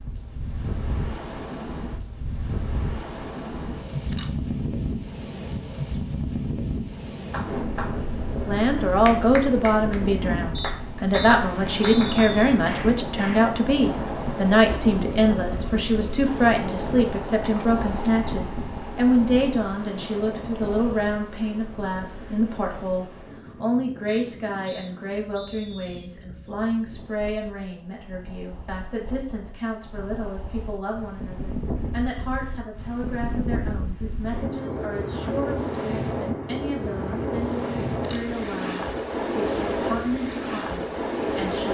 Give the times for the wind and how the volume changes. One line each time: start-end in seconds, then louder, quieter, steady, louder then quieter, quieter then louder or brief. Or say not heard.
0.0-41.6 quieter then louder.